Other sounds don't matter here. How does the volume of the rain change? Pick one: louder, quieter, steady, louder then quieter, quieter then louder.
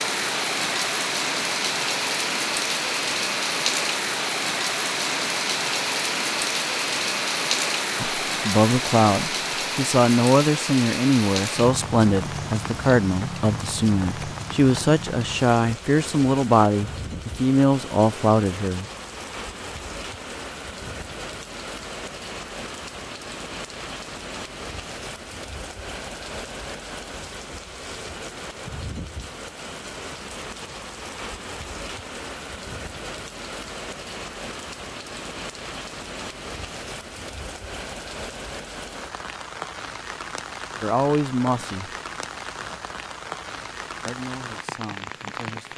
quieter.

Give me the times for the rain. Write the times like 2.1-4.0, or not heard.
0.0-45.7.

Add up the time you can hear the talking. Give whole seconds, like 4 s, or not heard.
14 s.